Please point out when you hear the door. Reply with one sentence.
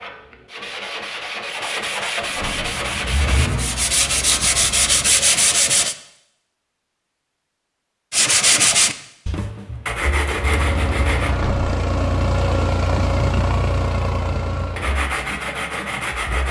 The door can be heard from 2.2 to 2.9 s and from 11.2 to 11.8 s.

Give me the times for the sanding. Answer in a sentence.
The sanding can be heard from 0.0 to 6.0 s, from 8.1 to 11.3 s and from 14.8 to 16.4 s.